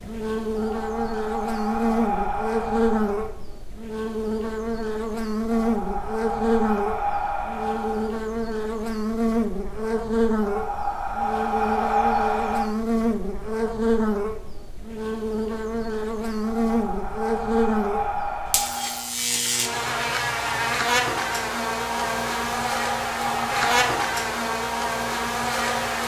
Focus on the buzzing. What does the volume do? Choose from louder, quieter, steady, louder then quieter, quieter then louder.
steady.